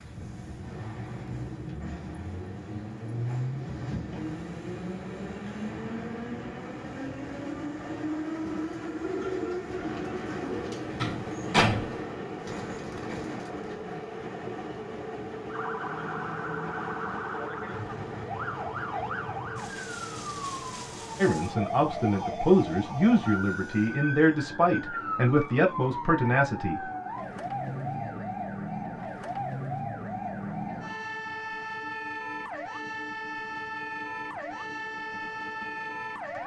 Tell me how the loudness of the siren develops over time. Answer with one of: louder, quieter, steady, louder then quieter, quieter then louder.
steady.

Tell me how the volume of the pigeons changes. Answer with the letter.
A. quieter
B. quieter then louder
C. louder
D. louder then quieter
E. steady
A.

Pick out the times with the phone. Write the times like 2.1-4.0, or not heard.
not heard.